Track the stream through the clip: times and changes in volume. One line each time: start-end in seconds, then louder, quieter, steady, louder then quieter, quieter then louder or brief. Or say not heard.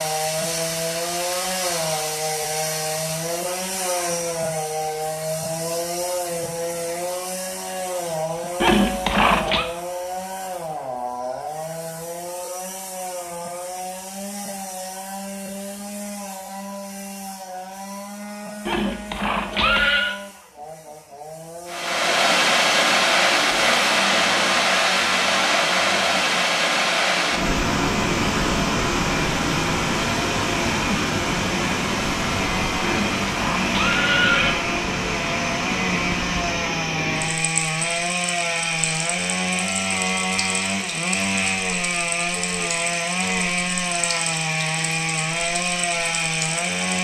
21.7-46.9 quieter.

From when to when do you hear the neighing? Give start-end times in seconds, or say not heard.
8.6-9.7, 18.6-20.1, 32.9-34.6.